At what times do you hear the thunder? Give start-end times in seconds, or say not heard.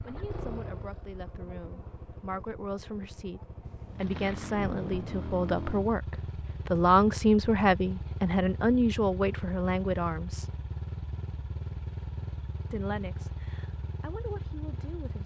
3.6-5.2.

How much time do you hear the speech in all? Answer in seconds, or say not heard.
13 s.